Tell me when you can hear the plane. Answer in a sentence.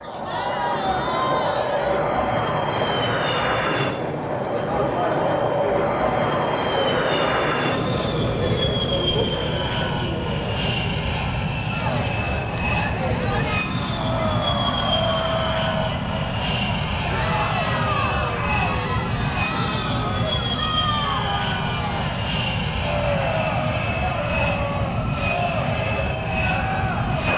The plane can be heard from 0.0 to 27.3 s.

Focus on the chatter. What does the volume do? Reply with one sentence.
The volume of the chatter stays about the same.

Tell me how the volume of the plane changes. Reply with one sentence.
The loudness of the plane stays about the same.